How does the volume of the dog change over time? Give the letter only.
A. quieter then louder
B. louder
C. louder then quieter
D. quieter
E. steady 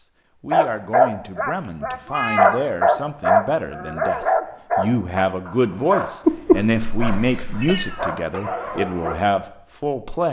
D.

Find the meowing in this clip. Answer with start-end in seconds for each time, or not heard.
2.0-2.6, 6.2-8.1.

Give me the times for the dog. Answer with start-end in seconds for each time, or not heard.
0.5-9.2.